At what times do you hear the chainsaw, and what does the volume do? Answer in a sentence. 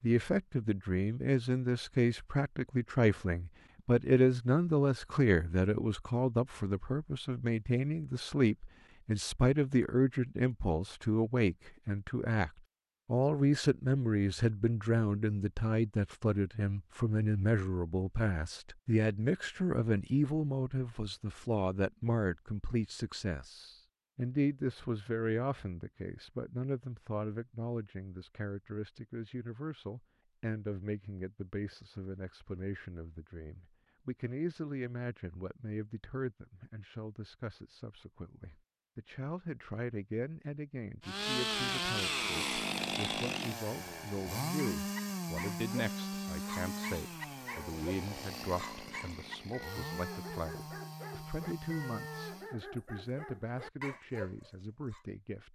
You can hear the chainsaw from 41.0 to 52.5 s, getting quieter.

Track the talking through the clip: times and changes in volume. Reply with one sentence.
You can hear the talking from 0.0 to 55.5 s, getting quieter.